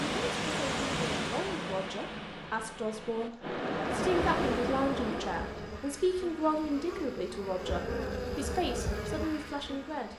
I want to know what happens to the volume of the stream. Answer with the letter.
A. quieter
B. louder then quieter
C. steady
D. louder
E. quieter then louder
E.